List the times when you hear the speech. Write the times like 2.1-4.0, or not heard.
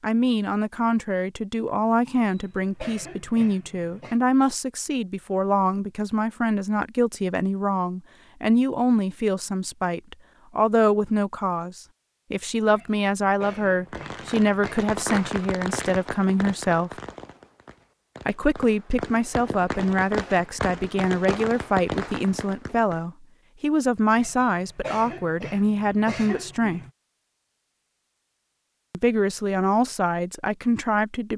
0.0-16.9, 18.2-26.8, 28.9-31.3.